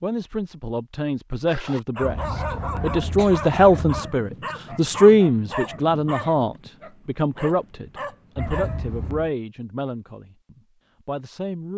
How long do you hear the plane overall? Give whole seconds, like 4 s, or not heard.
not heard.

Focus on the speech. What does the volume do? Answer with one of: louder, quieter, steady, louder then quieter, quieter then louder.
louder then quieter.